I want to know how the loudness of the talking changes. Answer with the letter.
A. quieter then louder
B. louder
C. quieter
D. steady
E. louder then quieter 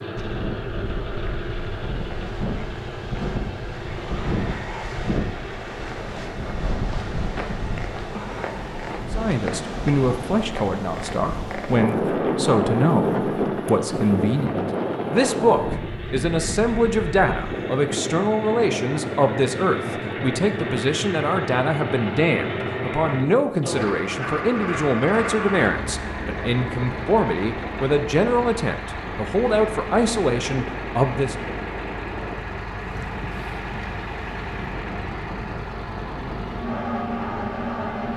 D.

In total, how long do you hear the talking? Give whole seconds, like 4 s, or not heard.
22 s.